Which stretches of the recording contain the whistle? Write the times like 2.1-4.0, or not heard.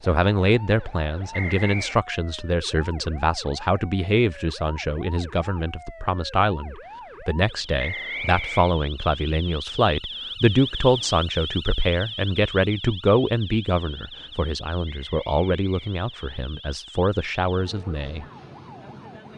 1.3-2.0, 7.8-8.7, 14.8-16.4.